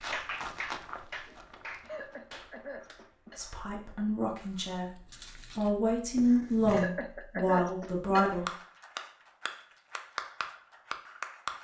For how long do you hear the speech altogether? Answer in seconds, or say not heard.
5 s.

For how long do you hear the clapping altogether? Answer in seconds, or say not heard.
6 s.